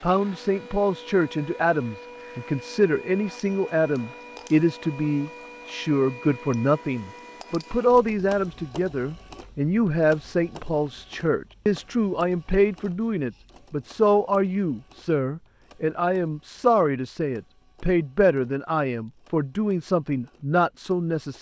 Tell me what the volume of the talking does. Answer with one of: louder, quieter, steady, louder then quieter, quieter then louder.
steady.